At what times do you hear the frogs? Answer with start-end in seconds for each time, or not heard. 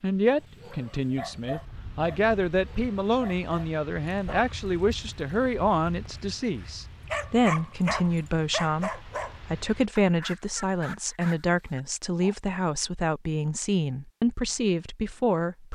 not heard.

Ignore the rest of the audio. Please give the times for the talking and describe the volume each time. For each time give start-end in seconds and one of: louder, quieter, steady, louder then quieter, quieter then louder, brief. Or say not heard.
0.0-15.7 steady.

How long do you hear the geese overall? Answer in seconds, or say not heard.
not heard.